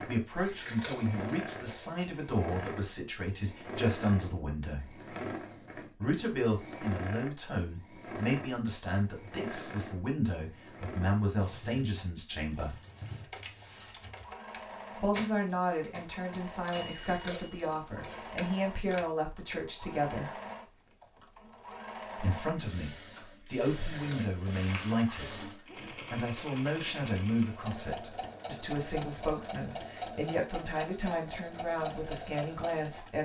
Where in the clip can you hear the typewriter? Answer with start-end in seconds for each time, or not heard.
13.2-19.6.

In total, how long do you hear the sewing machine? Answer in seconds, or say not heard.
33 s.